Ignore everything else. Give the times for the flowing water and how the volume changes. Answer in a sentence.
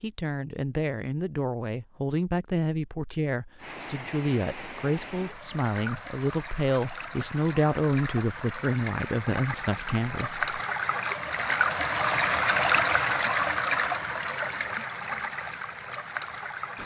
The flowing water can be heard from 3.5 to 16.8 s, getting louder then quieter.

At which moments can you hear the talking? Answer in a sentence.
You can hear the talking from 0.0 to 10.4 s.